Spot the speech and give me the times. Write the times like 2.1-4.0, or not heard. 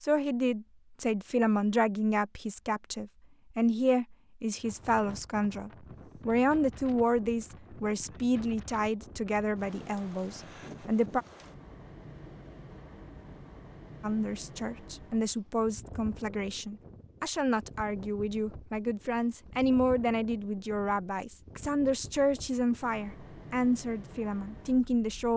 0.0-11.2, 14.0-25.3.